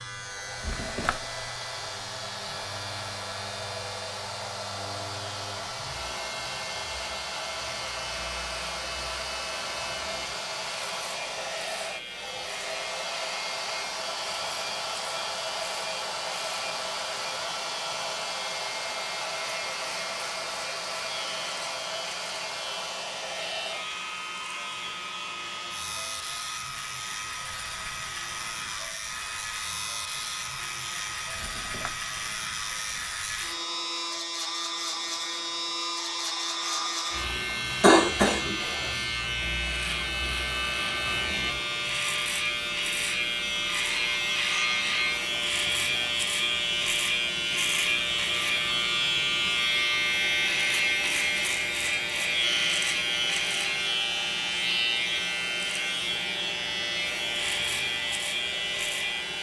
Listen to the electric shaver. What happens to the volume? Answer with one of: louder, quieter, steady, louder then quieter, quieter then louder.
louder.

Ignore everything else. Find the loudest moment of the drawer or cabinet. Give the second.
1 s.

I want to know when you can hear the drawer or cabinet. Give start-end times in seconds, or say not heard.
0.6-1.4, 31.4-32.0.